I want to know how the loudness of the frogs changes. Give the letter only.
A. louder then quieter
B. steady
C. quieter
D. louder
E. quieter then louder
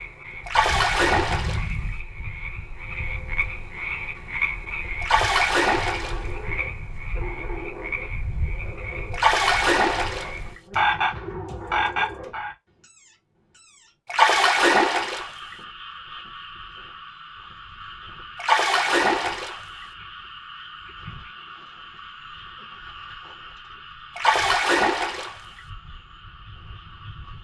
C.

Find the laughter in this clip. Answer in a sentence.
You can't hear the laughter here.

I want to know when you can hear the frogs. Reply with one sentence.
The frogs can be heard from 0.0 to 27.3 s.